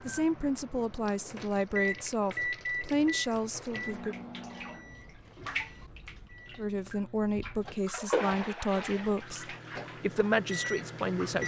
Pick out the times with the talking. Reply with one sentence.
You can hear the talking from 0.1 to 4.2 s and from 6.5 to 11.4 s.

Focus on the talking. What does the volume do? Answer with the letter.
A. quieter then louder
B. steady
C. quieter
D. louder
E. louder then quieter
B.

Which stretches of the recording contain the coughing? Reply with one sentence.
The coughing can't be heard in this clip.